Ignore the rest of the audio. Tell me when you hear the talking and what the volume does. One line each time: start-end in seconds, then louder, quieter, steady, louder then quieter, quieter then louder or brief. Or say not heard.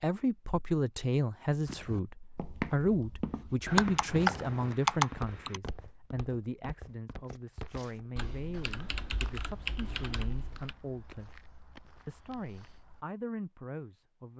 0.0-11.3 quieter
12.1-14.3 brief.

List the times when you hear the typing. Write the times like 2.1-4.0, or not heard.
3.6-5.6, 8.2-10.8.